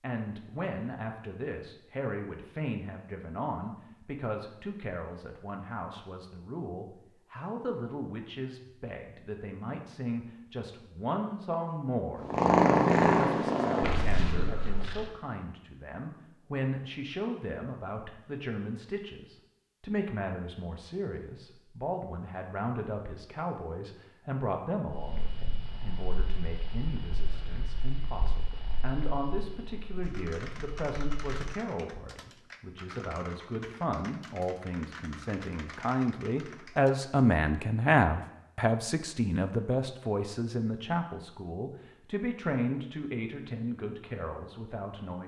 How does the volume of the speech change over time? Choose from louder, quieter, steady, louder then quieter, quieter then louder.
louder.